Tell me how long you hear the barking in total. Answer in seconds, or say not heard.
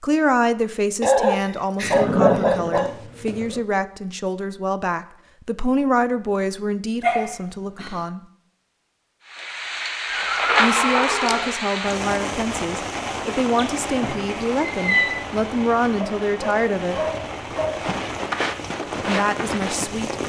5 s.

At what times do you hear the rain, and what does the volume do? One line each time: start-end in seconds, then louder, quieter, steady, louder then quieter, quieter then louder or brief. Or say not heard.
9.2-20.2 quieter.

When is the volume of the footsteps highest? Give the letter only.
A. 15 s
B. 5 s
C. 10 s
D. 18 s
D.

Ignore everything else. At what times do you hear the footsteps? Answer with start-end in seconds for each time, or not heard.
17.8-20.0.